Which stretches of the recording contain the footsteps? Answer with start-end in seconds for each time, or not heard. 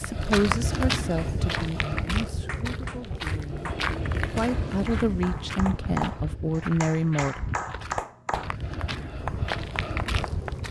0.0-10.6.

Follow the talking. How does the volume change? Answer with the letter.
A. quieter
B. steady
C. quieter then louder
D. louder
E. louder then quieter
C.